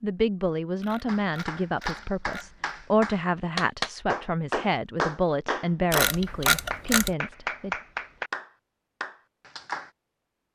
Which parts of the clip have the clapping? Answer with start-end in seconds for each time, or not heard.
1.1-9.9.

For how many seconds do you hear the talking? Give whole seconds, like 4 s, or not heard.
8 s.